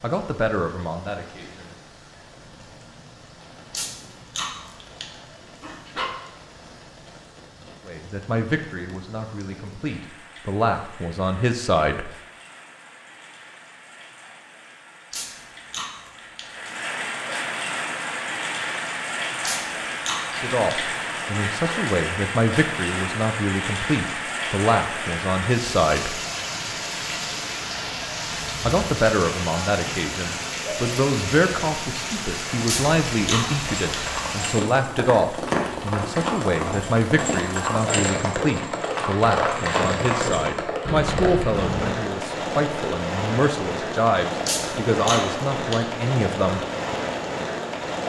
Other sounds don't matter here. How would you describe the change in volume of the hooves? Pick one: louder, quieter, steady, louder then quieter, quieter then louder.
louder.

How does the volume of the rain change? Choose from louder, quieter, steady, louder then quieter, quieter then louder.
louder.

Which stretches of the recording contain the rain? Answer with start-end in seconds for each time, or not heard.
0.0-48.0.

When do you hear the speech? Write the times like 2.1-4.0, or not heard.
0.0-1.7, 7.8-12.1, 20.4-26.1, 28.6-46.6.